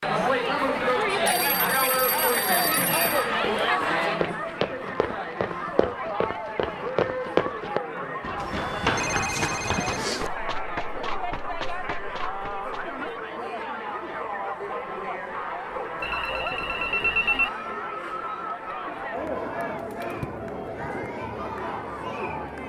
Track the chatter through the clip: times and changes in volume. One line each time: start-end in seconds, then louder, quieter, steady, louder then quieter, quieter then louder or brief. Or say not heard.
0.0-22.6 quieter.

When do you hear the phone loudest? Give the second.
17 s.